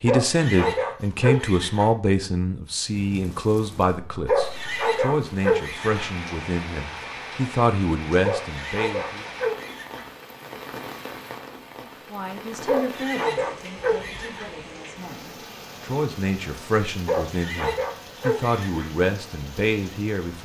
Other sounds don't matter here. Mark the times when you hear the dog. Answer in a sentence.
You can hear the dog from 0.1 to 1.9 s, from 4.2 to 6.1 s, from 8.2 to 10.1 s, from 12.7 to 14.5 s and from 17.1 to 18.9 s.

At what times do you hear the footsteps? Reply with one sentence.
You can't hear the footsteps here.